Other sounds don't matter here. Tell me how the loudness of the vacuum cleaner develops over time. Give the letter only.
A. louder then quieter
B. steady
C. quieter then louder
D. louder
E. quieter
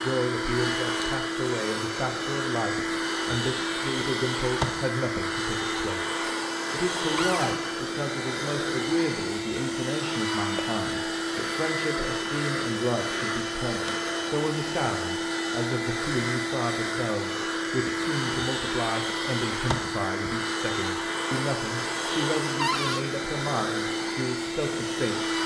B.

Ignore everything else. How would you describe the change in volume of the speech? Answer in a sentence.
The loudness of the speech stays about the same.